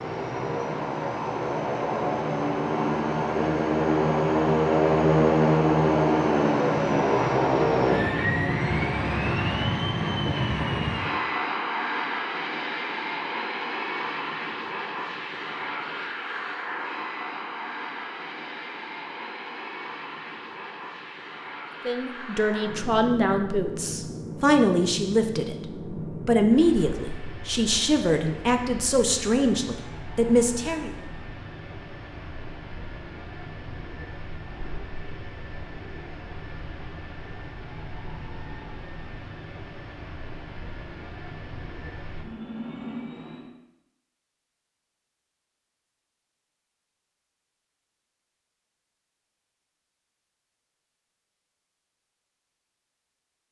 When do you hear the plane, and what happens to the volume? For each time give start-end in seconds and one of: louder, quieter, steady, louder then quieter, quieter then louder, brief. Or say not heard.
0.0-43.5 quieter.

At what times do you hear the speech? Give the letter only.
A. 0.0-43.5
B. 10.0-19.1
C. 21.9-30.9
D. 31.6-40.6
C.